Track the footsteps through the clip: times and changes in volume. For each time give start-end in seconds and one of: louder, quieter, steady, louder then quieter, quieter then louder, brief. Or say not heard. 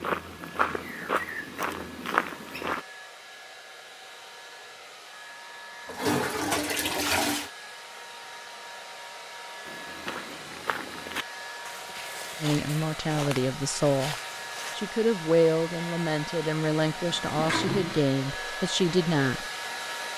0.0-2.9 brief
9.7-14.8 steady.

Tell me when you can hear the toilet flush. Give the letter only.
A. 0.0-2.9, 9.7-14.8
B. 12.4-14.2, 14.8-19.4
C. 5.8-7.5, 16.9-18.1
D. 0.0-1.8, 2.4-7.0
C.